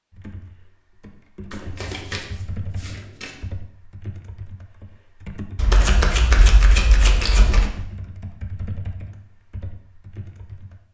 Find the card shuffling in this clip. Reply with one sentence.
You can hear the card shuffling from 1.5 to 3.4 s and from 5.5 to 7.7 s.